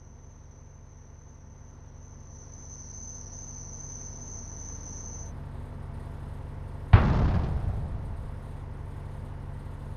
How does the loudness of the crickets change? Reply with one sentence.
The loudness of the crickets goes up.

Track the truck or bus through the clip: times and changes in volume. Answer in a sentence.
The truck or bus can be heard from 0.0 to 9.9 s, getting louder.